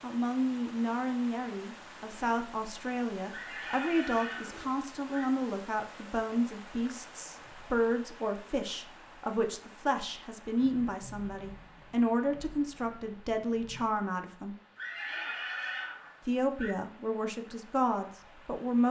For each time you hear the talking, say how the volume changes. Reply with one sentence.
The talking can be heard from 0.0 to 14.6 s, at a steady volume; and briefly from 16.2 to 18.8 s.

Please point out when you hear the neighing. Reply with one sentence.
You can hear the neighing from 3.3 to 5.2 s and from 14.8 to 16.8 s.